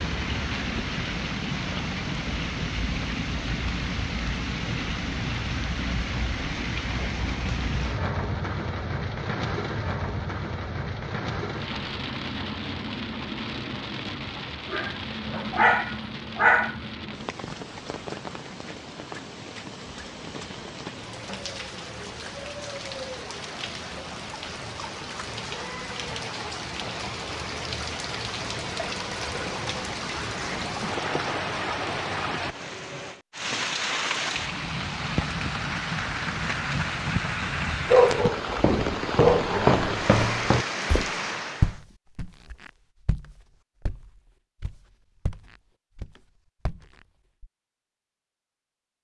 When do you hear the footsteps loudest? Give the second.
40 s.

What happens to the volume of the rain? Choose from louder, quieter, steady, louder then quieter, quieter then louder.
quieter then louder.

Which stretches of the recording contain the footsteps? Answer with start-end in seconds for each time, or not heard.
38.2-47.5.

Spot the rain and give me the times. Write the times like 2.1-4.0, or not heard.
0.0-41.8.